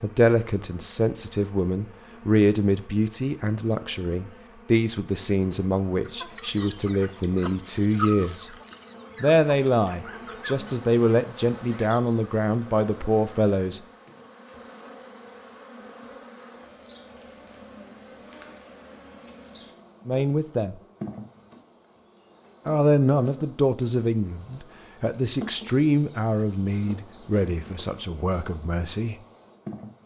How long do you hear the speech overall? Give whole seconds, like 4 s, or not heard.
20 s.